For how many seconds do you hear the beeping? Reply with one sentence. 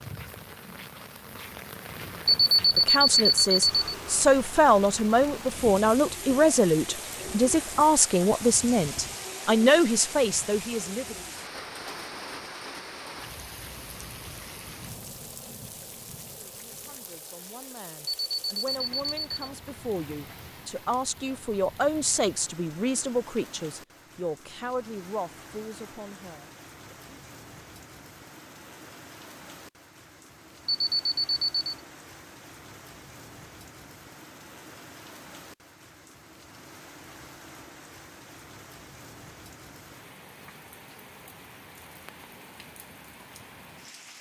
The beeping can be heard for 4 seconds in total.